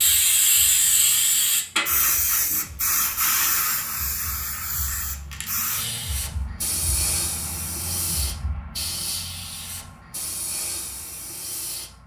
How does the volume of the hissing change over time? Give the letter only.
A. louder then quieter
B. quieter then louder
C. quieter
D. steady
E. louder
C.